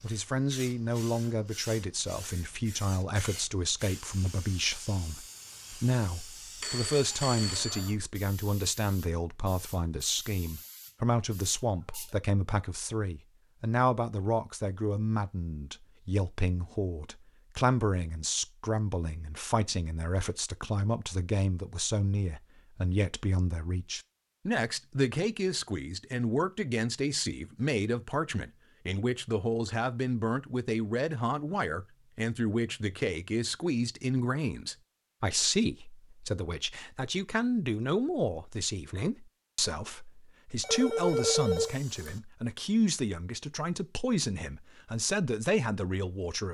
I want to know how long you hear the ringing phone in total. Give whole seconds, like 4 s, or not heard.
3 s.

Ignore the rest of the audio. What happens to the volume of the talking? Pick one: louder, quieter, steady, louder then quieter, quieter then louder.
steady.